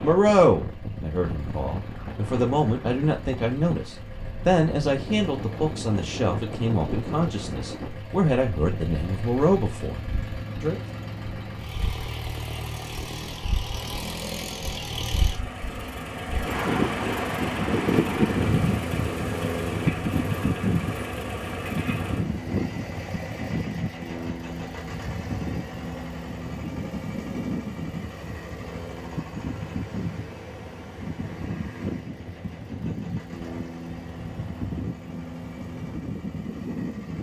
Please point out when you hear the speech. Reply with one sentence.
The speech can be heard from 0.0 to 10.8 s.